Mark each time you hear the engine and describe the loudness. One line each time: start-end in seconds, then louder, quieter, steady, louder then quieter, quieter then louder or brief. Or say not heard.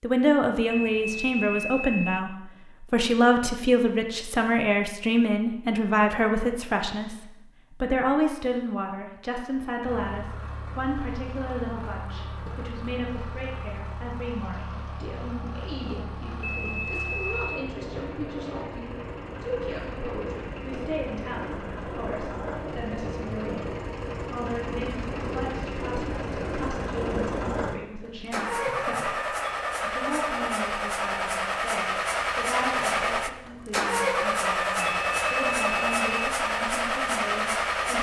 9.8-37.9 louder.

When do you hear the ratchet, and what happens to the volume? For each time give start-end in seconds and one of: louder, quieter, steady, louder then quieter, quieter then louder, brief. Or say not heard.
not heard.